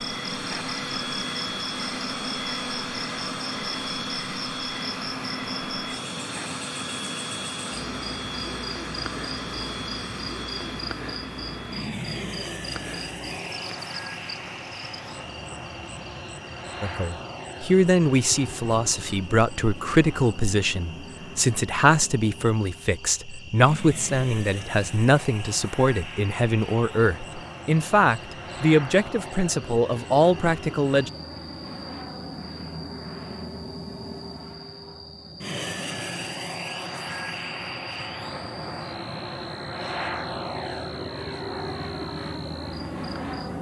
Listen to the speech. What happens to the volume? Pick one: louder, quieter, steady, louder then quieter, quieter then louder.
steady.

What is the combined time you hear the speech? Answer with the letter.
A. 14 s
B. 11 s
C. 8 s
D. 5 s
A.